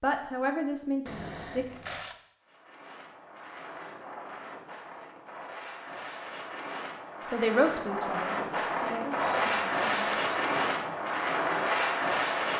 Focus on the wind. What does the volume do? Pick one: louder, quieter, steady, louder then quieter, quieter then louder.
louder.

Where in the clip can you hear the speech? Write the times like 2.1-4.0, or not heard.
0.0-1.6, 7.3-9.8.